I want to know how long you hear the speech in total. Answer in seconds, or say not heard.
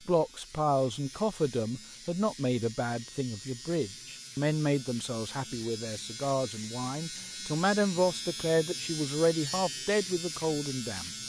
11 s.